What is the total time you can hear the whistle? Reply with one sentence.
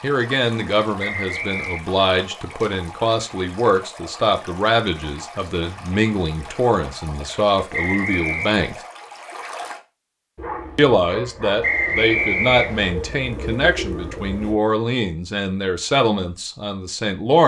The whistle can be heard for 3 seconds in total.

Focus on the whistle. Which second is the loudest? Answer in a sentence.
The loudest moment of the whistle is at 12 seconds.